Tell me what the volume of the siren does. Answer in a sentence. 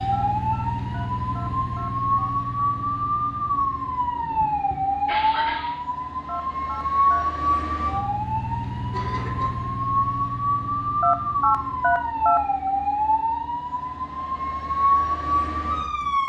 The volume of the siren stays about the same.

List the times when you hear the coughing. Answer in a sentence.
You can hear the coughing from 4.2 to 5.8 s and from 8.9 to 9.6 s.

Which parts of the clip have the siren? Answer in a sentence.
The siren can be heard from 0.0 to 16.2 s.